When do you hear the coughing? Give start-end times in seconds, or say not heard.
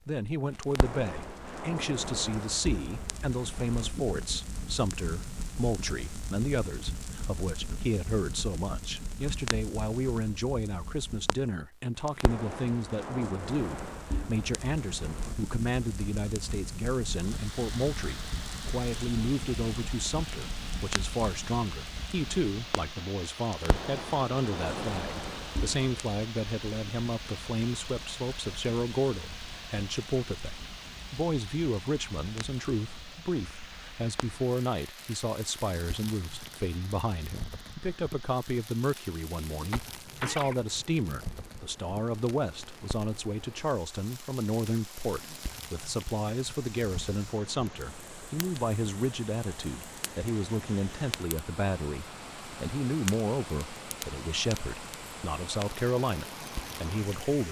39.7-40.6.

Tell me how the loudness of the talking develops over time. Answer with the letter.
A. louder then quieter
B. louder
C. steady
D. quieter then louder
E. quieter
C.